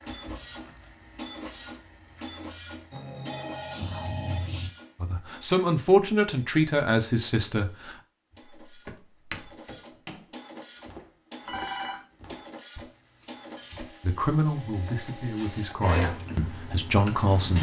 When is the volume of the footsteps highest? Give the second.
9 s.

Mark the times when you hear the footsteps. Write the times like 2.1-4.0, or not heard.
0.0-3.0, 8.7-14.1.